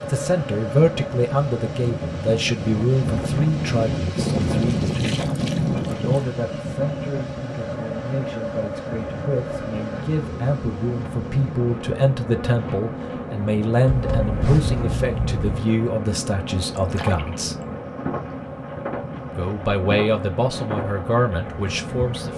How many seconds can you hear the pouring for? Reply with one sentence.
The pouring can be heard for 3 seconds in total.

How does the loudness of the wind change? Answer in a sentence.
The loudness of the wind goes down.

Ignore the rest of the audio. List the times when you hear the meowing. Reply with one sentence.
The meowing can be heard from 13.8 to 15.6 s.